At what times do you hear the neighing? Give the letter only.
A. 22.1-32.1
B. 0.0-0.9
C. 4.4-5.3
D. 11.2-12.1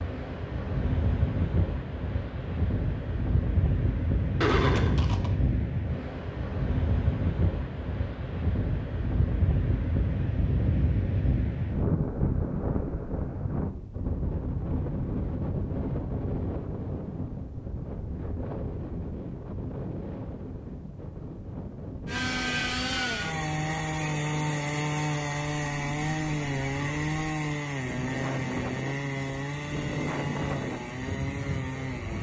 C.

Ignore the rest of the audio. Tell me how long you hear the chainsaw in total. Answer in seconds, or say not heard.
10 s.